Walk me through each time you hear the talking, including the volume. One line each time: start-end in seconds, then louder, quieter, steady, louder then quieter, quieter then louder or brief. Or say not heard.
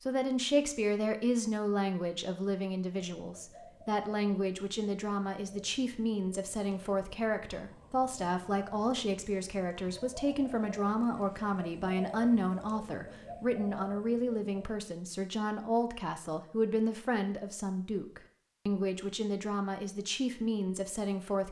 0.0-21.4 steady.